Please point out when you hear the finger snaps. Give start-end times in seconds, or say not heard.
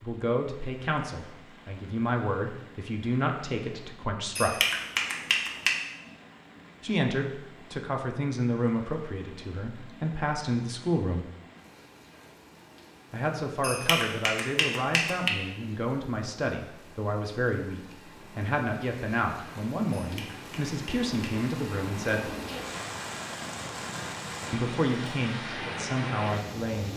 4.3-5.8, 13.6-15.3, 19.9-21.4.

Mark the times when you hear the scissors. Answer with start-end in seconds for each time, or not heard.
not heard.